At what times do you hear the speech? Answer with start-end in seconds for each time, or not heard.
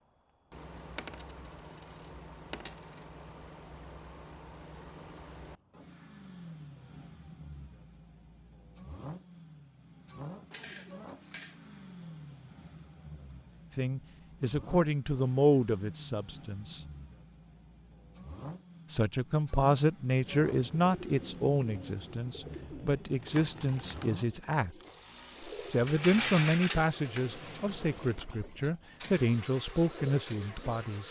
13.8-16.8, 18.9-24.8, 25.6-31.0.